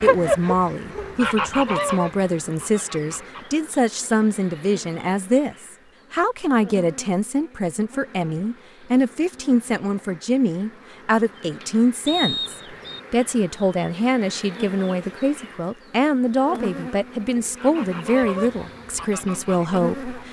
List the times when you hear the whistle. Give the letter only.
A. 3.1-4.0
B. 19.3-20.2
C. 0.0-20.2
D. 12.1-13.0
D.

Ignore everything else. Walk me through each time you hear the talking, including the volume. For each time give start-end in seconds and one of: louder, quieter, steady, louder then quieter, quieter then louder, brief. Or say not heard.
0.0-20.2 steady.